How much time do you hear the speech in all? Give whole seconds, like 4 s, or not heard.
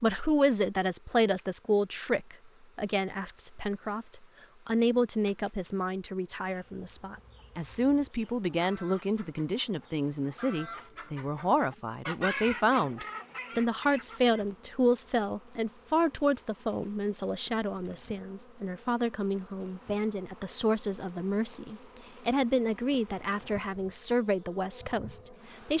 26 s.